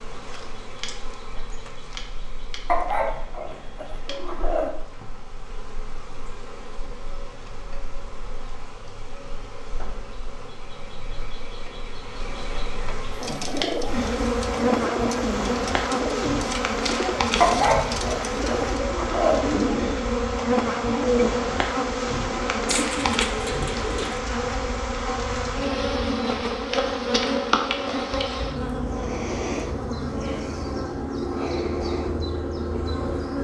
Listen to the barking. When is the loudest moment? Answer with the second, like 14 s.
18 s.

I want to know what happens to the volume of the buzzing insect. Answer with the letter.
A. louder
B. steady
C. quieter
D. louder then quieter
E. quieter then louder
A.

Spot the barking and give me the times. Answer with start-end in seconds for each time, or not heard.
2.6-4.7, 17.4-19.4.